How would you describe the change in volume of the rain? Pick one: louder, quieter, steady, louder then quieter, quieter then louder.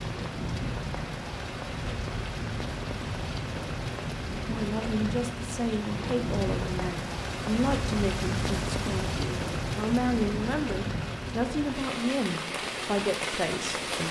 steady.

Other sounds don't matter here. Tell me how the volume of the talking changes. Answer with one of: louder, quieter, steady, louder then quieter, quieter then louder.
steady.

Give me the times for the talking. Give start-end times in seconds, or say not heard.
4.4-14.0.